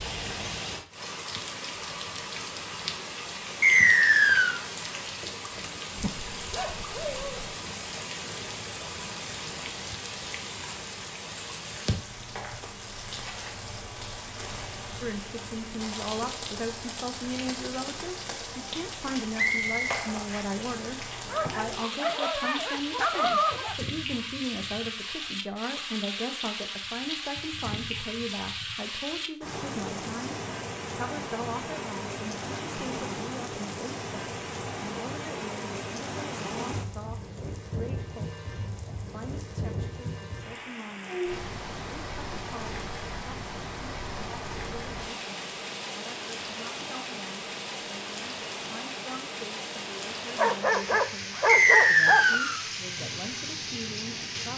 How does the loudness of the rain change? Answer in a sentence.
The volume of the rain stays about the same.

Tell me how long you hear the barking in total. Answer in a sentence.
You can hear the barking for 6 seconds altogether.